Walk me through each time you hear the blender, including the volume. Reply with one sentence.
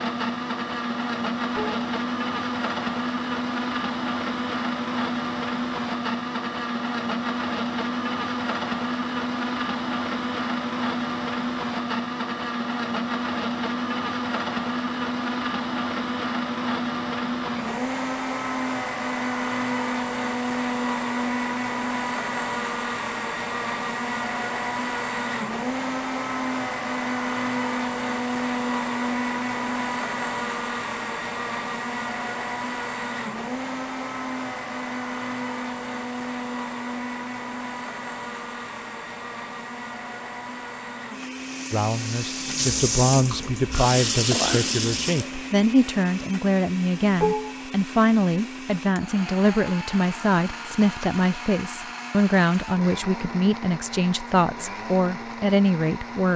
The blender can be heard from 0.0 to 56.3 s, getting quieter.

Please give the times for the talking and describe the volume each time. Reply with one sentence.
You can hear the talking from 41.7 to 56.3 s, at a steady volume.